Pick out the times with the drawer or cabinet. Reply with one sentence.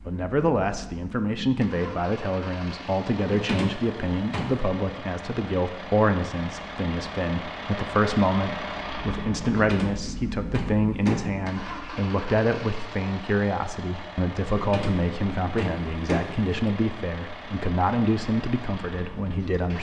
You can hear the drawer or cabinet from 3.2 to 4.6 s, from 9.5 to 11.3 s and from 14.5 to 16.6 s.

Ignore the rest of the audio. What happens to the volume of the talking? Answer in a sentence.
The loudness of the talking stays about the same.